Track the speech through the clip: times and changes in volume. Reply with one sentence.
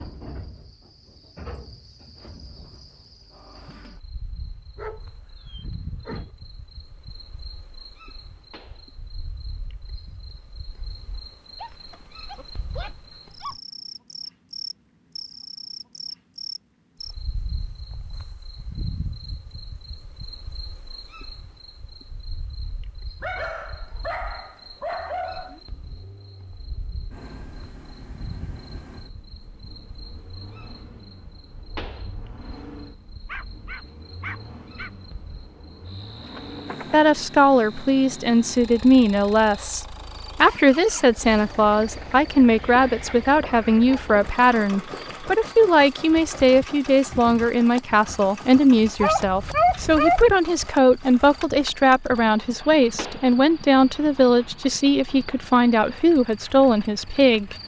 You can hear the speech from 36.9 to 57.5 s, at a steady volume.